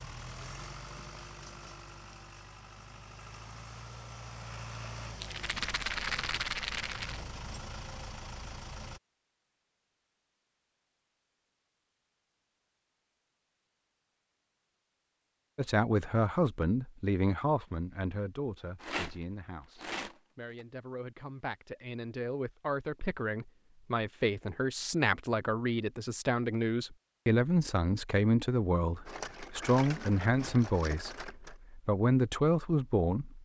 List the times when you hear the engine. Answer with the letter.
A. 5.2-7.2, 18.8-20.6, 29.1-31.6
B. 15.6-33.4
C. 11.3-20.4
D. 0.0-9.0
D.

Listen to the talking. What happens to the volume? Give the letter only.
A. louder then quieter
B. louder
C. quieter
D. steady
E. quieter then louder
E.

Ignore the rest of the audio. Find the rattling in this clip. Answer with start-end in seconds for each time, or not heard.
5.2-7.2, 18.8-20.6, 29.1-31.6.